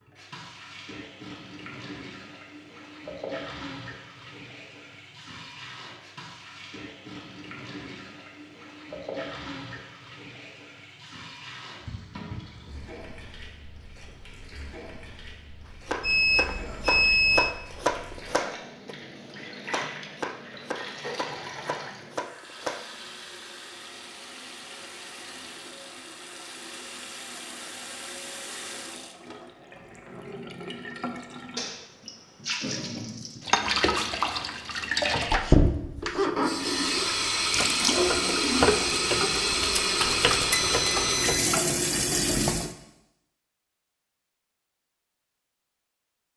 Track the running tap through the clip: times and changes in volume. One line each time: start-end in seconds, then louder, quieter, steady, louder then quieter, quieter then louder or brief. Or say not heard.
0.0-42.8 louder.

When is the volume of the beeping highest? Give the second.
17 s.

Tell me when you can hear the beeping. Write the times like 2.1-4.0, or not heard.
16.0-17.6, 40.0-41.5.